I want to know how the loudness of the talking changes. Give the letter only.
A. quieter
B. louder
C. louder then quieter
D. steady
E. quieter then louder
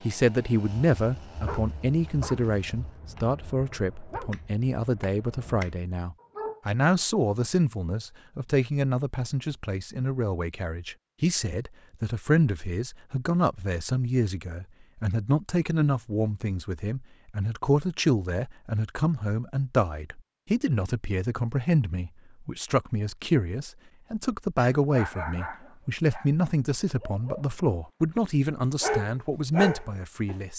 D.